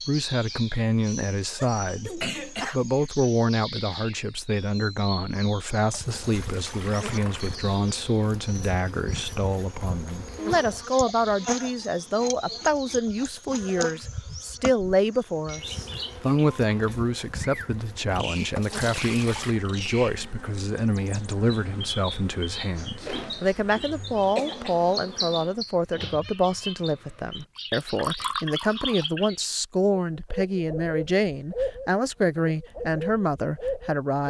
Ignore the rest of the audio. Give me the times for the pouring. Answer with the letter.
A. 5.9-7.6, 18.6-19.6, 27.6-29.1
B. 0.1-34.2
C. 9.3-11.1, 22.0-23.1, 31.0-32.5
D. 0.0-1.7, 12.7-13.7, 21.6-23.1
A.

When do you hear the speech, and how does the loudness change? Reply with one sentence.
You can hear the speech from 0.1 to 34.2 s, at a steady volume.